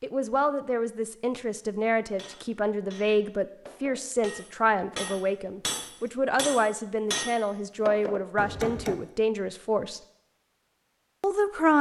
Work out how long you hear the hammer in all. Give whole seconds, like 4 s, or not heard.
7 s.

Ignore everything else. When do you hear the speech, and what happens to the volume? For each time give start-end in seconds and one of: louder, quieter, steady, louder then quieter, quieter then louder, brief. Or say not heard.
0.0-10.0 steady
11.2-11.7 brief.